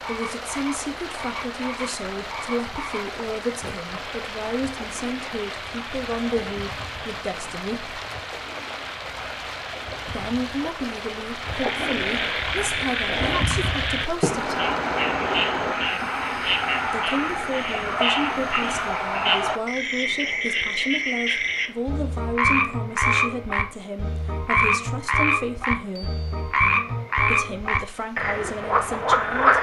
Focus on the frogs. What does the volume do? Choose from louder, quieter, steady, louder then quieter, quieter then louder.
louder.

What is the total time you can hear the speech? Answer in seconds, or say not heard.
24 s.